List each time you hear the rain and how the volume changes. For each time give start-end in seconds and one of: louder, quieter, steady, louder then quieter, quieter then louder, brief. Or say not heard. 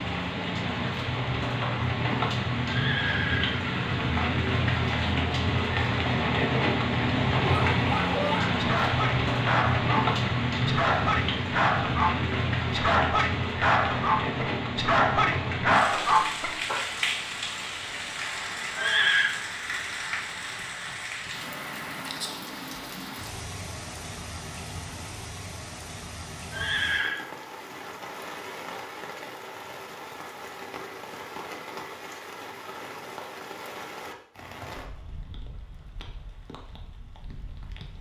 0.0-37.9 quieter.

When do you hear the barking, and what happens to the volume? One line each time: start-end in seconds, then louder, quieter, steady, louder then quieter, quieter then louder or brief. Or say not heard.
7.3-16.9 louder.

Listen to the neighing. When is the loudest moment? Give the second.
19 s.